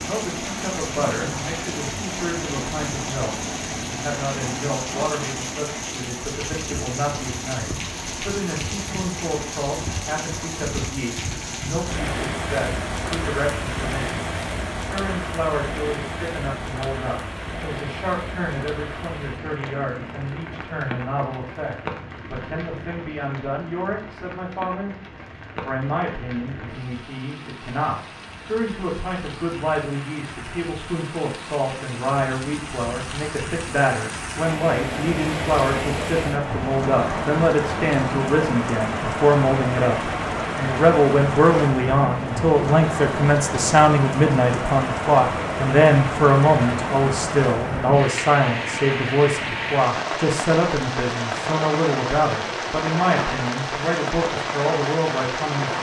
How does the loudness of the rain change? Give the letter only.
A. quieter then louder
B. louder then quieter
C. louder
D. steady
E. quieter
A.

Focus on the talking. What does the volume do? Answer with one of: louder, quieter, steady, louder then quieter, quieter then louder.
louder.